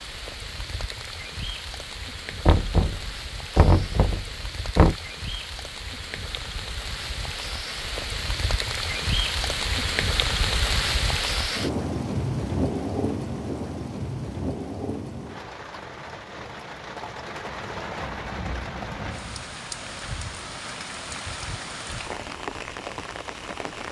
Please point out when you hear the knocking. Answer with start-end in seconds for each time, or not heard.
2.5-5.0.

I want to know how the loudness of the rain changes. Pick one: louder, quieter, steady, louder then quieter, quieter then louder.
louder then quieter.